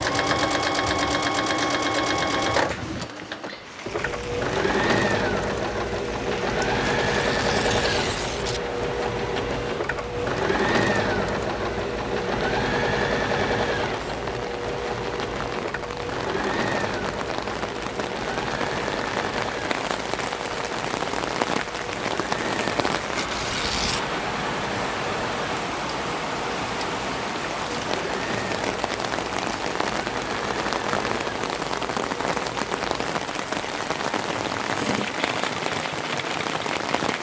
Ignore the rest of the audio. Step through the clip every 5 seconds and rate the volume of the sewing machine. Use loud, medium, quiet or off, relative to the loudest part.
loud, loud, loud, medium, medium, medium, medium, medium.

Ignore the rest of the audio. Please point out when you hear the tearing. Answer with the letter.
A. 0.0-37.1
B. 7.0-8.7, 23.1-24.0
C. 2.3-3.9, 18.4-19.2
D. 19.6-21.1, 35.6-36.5
B.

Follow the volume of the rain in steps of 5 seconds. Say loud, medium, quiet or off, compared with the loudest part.
medium, medium, medium, loud, loud, loud, loud, loud.